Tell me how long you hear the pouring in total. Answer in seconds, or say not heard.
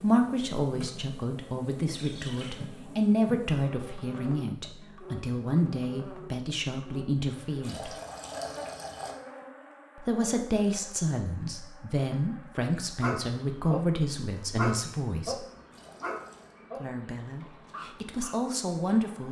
3 s.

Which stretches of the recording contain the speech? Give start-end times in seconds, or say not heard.
0.0-8.0, 10.0-15.4, 16.8-19.2.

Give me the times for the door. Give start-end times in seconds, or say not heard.
not heard.